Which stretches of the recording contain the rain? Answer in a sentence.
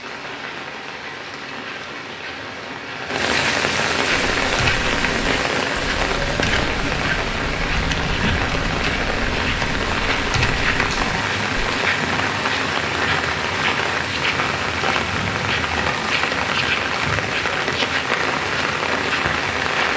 You can hear the rain from 0.0 to 19.9 s.